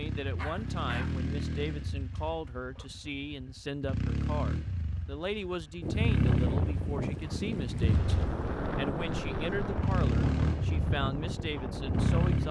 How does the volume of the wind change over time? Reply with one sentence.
The loudness of the wind stays about the same.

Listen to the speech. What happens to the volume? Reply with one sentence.
The volume of the speech stays about the same.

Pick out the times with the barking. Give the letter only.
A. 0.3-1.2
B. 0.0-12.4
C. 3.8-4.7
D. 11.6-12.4
A.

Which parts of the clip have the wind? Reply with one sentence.
The wind can be heard from 5.8 to 12.4 s.